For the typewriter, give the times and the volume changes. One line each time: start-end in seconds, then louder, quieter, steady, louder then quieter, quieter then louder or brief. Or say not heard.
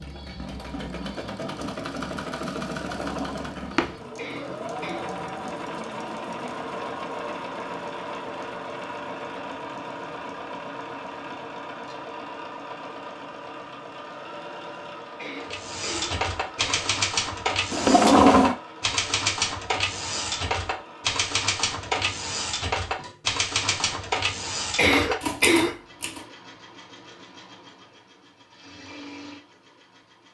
15.4-26.2 steady.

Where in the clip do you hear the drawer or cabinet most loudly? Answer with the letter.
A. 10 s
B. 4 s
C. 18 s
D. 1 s
C.